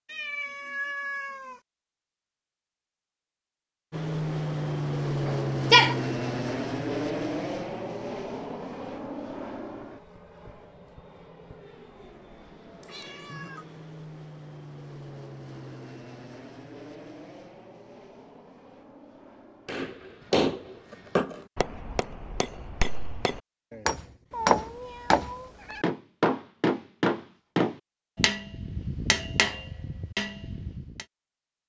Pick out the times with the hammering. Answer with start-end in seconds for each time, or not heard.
19.6-31.1.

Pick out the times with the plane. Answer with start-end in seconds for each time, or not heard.
3.9-21.2.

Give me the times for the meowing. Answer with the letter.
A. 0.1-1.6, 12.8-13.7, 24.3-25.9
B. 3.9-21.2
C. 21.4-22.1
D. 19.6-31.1
A.